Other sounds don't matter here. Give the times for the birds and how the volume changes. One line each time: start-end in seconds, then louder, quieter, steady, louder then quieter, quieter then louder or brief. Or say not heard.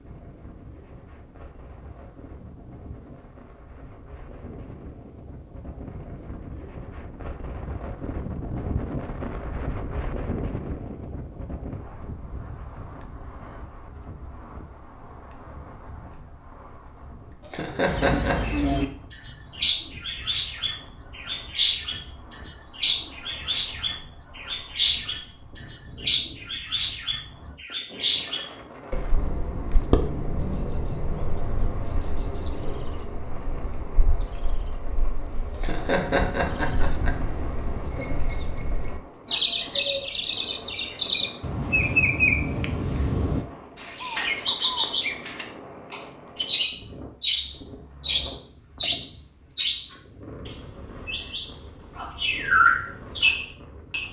17.9-18.9 brief
19.6-22.0 brief
22.8-25.2 brief
26.0-54.0 quieter then louder.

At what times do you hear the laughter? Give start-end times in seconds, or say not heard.
17.4-18.4, 35.5-37.1.